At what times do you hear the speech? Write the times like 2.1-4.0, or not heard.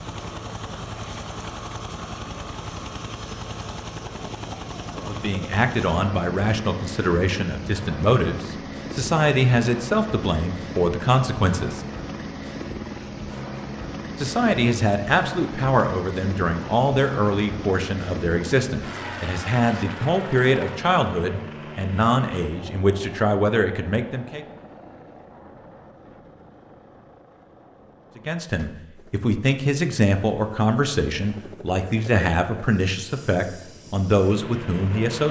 5.0-11.8, 14.2-24.4, 28.1-35.2.